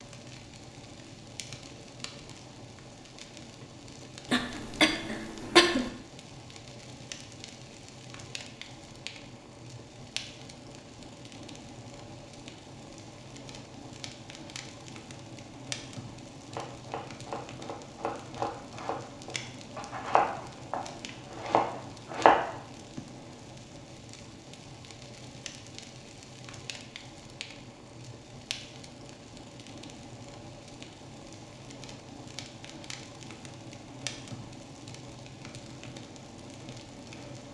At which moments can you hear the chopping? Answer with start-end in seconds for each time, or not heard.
16.4-22.4.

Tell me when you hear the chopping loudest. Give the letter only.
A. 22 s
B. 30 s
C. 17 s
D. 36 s
A.